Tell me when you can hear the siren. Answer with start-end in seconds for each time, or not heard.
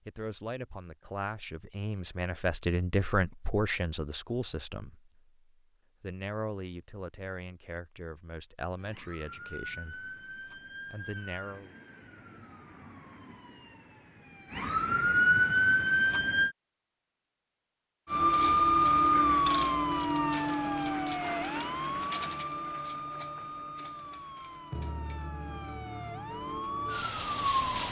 8.8-16.6, 18.1-27.8.